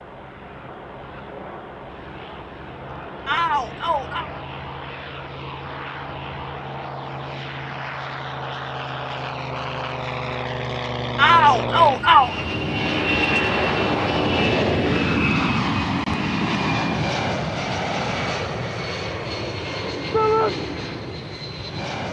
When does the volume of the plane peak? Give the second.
15 s.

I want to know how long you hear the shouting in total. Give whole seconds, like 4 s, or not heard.
3 s.